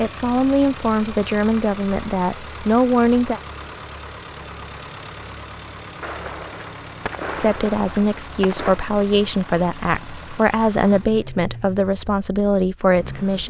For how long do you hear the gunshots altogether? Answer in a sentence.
You can hear the gunshots for 3 seconds altogether.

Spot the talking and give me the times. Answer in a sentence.
You can hear the talking from 0.0 to 3.4 s and from 7.3 to 13.4 s.